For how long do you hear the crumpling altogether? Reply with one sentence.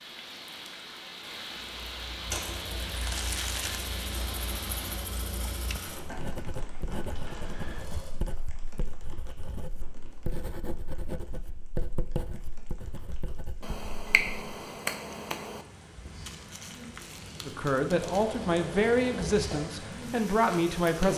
The crumpling can be heard for 3 seconds in total.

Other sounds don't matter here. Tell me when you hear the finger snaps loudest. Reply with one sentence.
The loudest moment of the finger snaps is at 14 seconds.